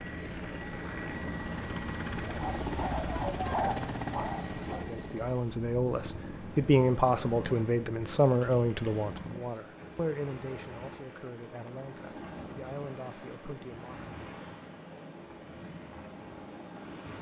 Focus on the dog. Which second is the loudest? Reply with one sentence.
The volume of the dog peaks at 4 seconds.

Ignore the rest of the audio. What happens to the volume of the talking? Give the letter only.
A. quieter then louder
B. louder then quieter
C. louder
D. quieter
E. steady
D.